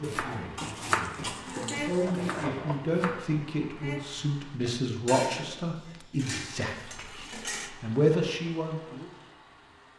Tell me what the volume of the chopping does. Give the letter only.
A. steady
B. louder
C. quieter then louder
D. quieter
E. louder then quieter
D.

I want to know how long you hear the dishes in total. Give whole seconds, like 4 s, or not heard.
5 s.